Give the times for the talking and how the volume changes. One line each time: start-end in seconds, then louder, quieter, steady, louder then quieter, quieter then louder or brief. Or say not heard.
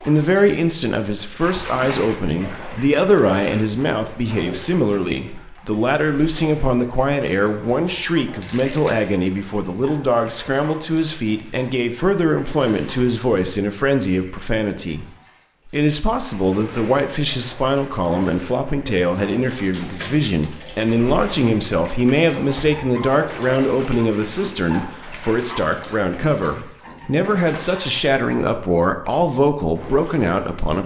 0.0-15.1 steady
15.7-30.8 steady.